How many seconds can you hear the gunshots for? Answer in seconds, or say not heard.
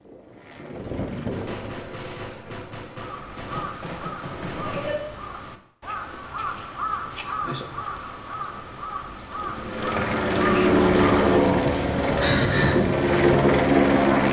4 s.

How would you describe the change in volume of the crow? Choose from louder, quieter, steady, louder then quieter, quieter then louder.
louder.